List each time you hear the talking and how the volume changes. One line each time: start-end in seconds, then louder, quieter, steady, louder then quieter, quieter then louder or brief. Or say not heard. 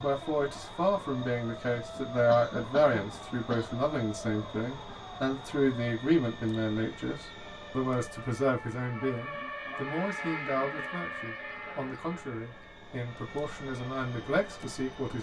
0.0-15.1 quieter.